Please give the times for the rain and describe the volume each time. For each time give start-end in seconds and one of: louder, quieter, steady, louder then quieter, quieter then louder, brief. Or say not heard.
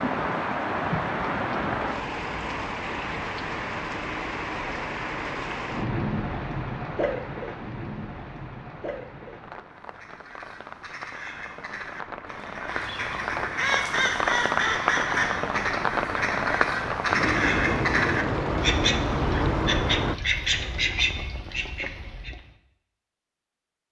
0.0-20.1 quieter then louder.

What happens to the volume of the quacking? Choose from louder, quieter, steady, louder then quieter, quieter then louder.
louder.